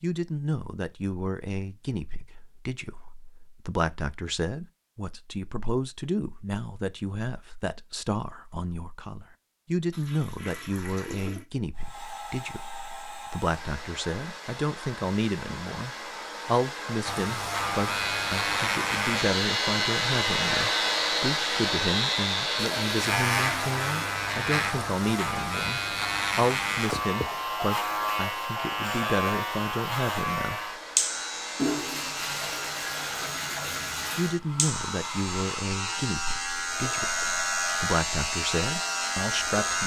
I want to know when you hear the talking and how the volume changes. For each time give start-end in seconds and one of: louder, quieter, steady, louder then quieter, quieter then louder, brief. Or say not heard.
0.0-30.6 steady
34.1-39.8 quieter then louder.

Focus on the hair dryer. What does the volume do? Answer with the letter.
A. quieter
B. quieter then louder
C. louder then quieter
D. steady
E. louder
C.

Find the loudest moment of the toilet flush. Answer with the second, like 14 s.
32 s.